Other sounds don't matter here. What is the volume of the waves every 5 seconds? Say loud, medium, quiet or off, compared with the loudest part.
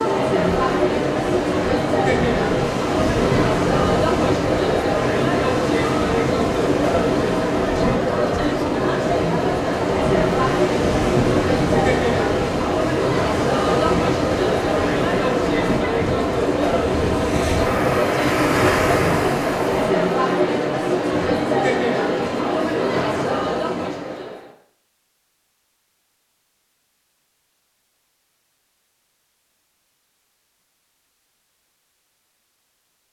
loud, loud, loud, loud, off, off, off.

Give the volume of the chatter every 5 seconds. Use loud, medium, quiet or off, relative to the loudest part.
loud, loud, loud, loud, loud, off, off.